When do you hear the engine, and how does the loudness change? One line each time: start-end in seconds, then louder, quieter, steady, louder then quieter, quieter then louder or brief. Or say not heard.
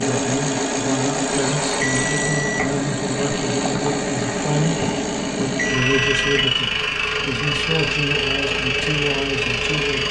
0.0-10.0 steady.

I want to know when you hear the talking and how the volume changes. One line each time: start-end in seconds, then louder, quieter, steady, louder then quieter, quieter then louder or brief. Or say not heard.
0.0-10.0 steady.